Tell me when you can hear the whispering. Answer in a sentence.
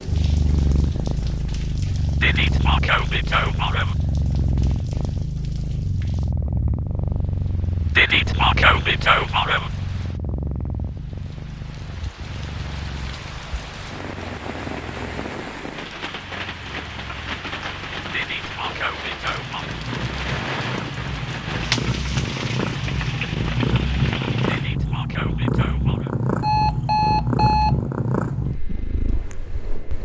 The whispering can be heard from 2.2 to 4.0 s, from 8.0 to 9.7 s, from 18.1 to 19.6 s and from 24.4 to 26.1 s.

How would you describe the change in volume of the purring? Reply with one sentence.
The volume of the purring goes down, then up.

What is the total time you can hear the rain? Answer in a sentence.
You can hear the rain for 25 seconds altogether.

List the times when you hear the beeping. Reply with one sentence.
You can hear the beeping from 26.4 to 27.8 s.